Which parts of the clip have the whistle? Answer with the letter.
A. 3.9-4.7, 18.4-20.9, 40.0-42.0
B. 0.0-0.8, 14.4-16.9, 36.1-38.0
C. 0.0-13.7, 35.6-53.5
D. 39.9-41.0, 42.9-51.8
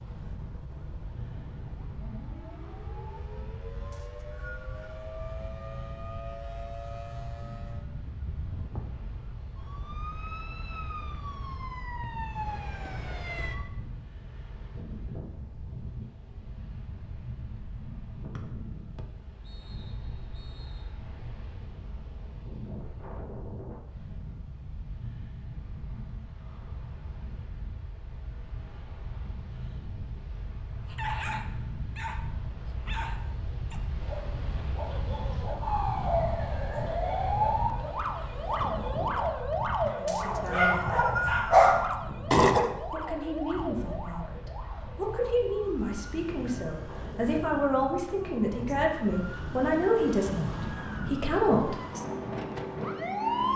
A.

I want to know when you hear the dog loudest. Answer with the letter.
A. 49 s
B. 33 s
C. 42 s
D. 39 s
C.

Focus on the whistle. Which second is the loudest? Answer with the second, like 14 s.
41 s.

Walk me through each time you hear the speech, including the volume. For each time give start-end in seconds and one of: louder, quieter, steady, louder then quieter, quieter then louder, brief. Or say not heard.
39.9-41.0 brief
42.9-51.8 louder.